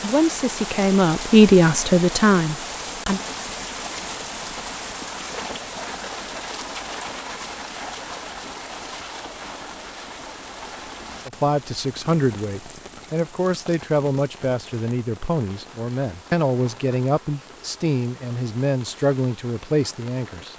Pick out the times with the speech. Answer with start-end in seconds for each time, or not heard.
0.0-3.2, 11.2-20.5.